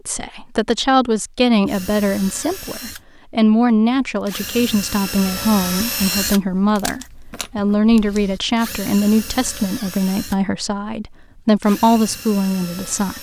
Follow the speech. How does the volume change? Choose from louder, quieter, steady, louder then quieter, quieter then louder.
steady.